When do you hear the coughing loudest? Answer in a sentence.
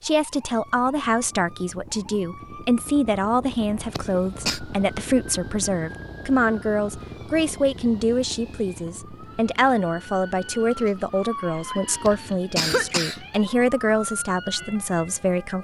The volume of the coughing peaks at 13 seconds.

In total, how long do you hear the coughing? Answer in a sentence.
The coughing can be heard for 2 seconds in total.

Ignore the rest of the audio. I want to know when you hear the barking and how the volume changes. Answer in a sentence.
You can't hear the barking here.